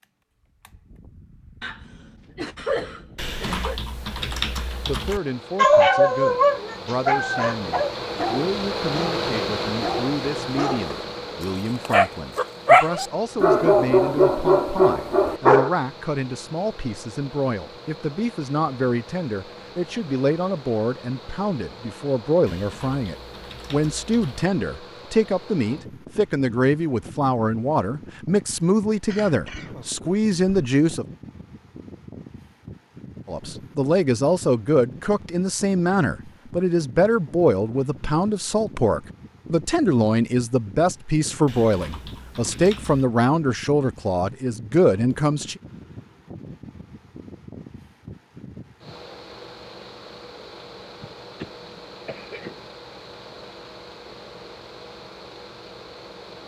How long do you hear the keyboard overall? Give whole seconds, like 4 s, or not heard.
6 s.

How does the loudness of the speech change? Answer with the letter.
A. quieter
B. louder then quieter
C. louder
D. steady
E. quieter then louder
C.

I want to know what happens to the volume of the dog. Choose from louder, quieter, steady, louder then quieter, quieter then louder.
quieter then louder.